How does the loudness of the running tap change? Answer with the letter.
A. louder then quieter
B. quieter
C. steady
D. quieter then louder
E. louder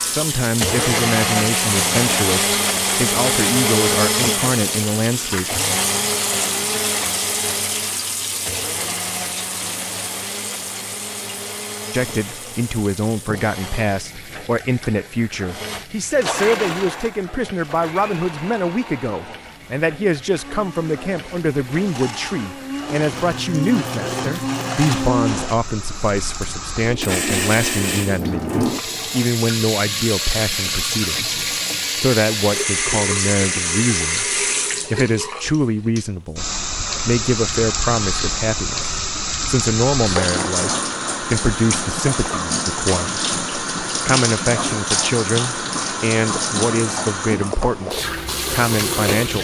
D.